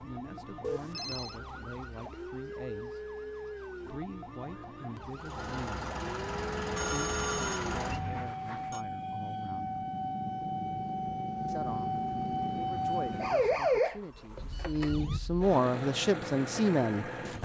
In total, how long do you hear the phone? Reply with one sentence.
You can hear the phone for 3 seconds altogether.